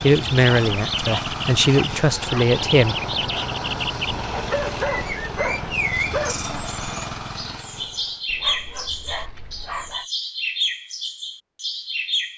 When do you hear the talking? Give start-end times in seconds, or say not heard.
0.0-3.0.